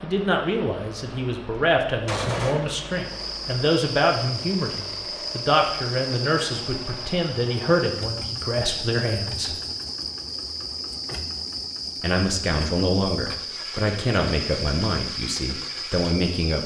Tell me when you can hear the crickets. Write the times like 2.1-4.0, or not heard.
2.9-16.6.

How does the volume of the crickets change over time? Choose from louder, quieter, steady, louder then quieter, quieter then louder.
steady.